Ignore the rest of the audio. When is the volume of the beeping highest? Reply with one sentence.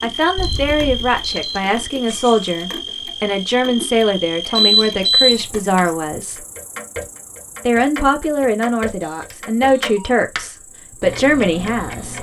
The volume of the beeping peaks at 5 seconds.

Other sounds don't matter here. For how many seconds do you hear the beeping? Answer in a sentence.
You can hear the beeping for 3 seconds altogether.